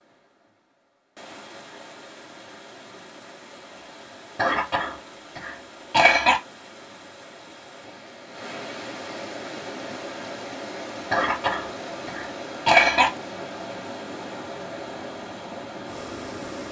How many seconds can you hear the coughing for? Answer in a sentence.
You can hear the coughing for 4 seconds altogether.